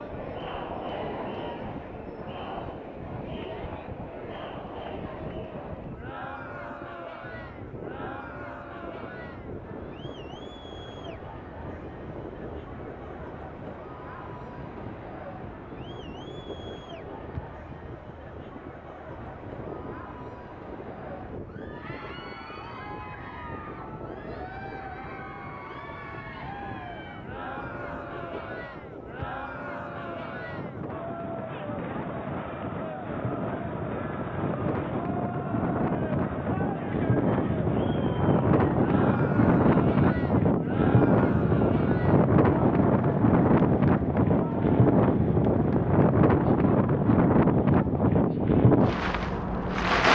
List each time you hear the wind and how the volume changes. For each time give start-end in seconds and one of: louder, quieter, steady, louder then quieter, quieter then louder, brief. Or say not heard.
0.0-50.0 louder.